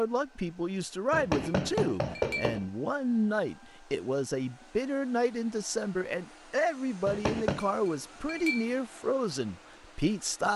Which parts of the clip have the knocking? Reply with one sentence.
You can hear the knocking from 1.1 to 2.6 s and from 7.0 to 7.7 s.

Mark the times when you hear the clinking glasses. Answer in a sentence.
The clinking glasses can be heard from 1.4 to 2.6 s and from 7.4 to 8.8 s.